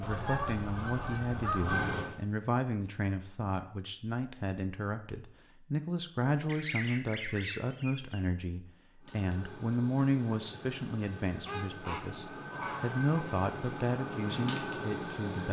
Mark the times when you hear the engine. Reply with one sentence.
The engine can be heard from 0.0 to 2.1 s and from 9.0 to 15.4 s.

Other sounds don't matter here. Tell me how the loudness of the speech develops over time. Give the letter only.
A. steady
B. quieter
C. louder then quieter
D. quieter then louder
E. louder
A.